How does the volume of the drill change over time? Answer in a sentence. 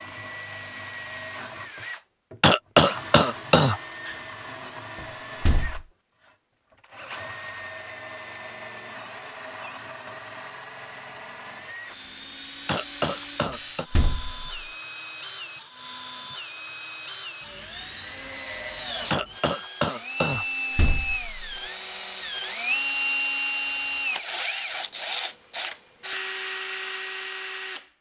The loudness of the drill goes up.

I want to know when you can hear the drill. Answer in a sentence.
You can hear the drill from 0.0 to 27.9 s.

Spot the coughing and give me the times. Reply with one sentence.
The coughing can be heard from 2.4 to 4.2 s, from 12.7 to 13.8 s and from 19.1 to 20.8 s.